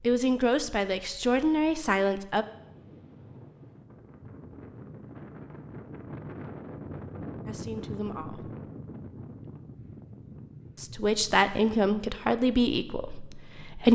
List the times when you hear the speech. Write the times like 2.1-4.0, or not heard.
0.0-2.5, 7.5-8.5, 10.8-13.9.